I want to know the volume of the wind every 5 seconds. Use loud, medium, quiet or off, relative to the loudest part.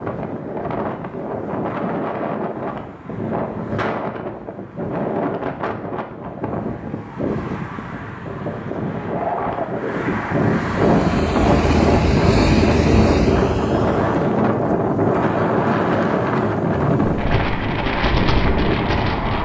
medium, medium, loud, loud.